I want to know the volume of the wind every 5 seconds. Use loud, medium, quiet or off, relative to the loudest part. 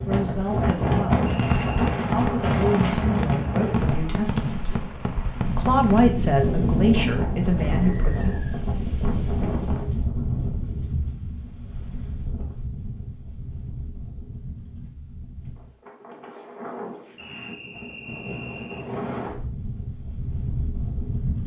loud, loud, medium, medium, medium.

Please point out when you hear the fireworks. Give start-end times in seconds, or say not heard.
0.7-6.0.